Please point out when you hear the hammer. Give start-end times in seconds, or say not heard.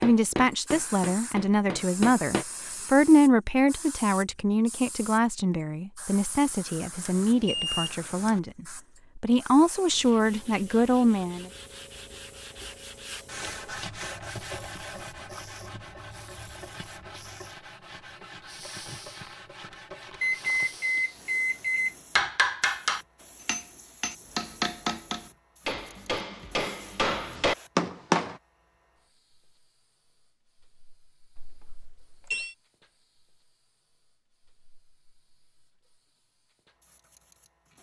0.0-2.5, 22.1-28.4.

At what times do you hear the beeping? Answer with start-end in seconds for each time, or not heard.
7.0-8.4, 20.2-21.9, 31.4-32.5.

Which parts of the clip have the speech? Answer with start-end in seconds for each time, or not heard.
0.0-11.4.